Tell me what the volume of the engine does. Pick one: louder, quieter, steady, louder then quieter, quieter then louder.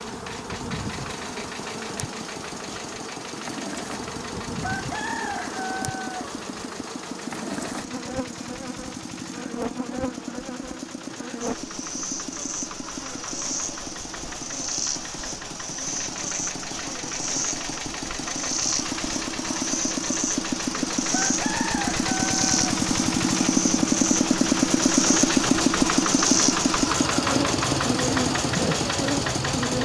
louder.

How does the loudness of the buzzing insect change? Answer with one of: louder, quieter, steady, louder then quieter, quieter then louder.
louder.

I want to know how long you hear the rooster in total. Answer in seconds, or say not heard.
3 s.